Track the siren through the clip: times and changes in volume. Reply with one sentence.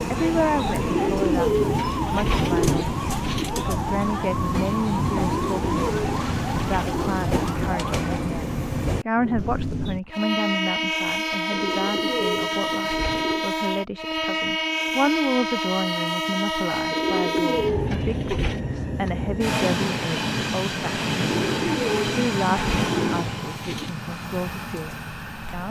You can hear the siren from 0.0 to 8.2 s, at a steady volume.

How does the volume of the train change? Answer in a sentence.
The volume of the train stays about the same.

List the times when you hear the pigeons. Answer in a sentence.
You can hear the pigeons from 0.8 to 3.5 s, from 5.2 to 7.3 s, from 11.5 to 13.5 s, from 16.9 to 18.6 s and from 21.2 to 23.9 s.